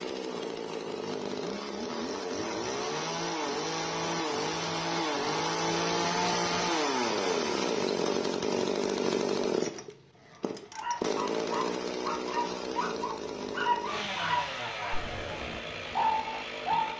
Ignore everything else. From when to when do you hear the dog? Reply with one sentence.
You can hear the dog from 10.3 to 16.9 s.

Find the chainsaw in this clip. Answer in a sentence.
You can hear the chainsaw from 0.0 to 16.9 s.